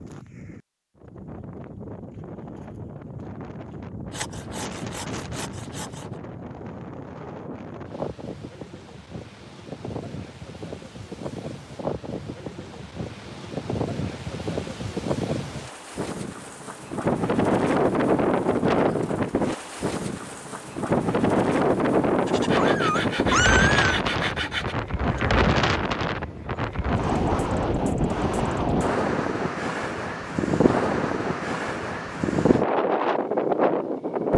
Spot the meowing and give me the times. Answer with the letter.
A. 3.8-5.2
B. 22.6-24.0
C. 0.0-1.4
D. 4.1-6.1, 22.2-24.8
B.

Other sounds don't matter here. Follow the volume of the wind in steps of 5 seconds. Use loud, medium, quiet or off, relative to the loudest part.
quiet, quiet, medium, loud, loud, loud, loud.